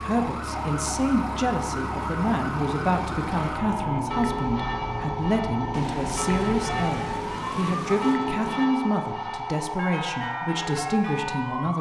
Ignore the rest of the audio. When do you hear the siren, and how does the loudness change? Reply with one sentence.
The siren can be heard from 0.0 to 11.7 s, at a steady volume.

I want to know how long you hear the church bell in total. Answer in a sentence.
You can hear the church bell for 11 seconds altogether.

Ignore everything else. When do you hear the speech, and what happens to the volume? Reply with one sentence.
The speech can be heard from 0.0 to 11.7 s, at a steady volume.